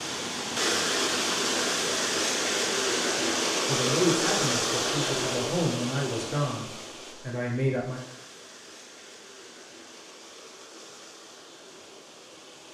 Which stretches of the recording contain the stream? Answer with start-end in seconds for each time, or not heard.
0.0-12.6.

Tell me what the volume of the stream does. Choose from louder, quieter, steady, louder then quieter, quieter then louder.
quieter.